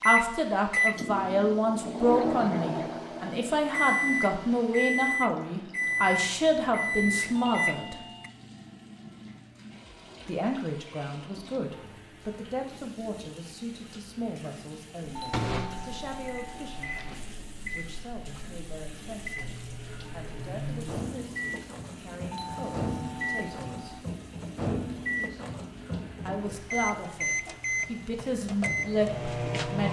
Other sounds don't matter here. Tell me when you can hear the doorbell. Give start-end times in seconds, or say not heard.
7.3-8.3, 15.2-17.1, 22.3-24.1.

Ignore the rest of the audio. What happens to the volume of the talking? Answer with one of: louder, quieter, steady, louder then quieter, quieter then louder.
quieter then louder.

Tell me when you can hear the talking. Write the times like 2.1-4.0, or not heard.
0.0-8.0, 10.2-24.0, 26.2-29.8.